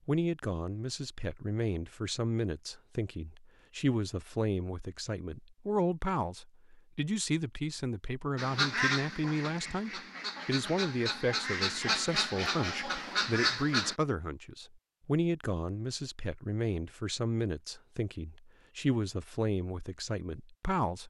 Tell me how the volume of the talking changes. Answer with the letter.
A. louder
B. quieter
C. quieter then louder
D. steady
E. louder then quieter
D.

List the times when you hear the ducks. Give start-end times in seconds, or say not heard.
8.3-13.9.